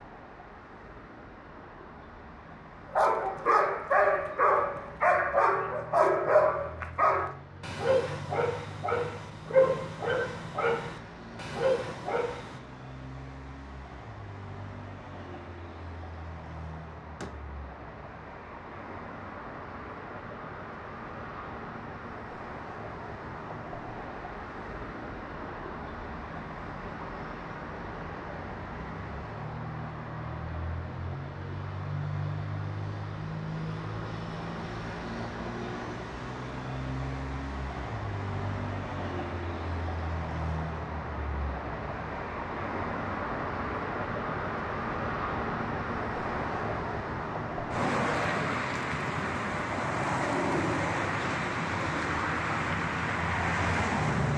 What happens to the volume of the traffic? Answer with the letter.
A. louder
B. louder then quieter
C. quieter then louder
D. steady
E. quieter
A.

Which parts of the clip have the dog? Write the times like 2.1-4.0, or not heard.
2.9-12.6.